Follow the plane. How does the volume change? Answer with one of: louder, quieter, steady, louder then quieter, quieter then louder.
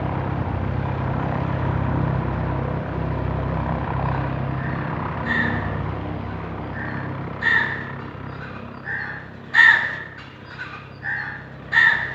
quieter.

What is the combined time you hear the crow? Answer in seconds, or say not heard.
6 s.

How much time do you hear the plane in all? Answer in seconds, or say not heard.
12 s.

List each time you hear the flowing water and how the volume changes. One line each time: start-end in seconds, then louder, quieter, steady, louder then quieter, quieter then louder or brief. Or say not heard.
not heard.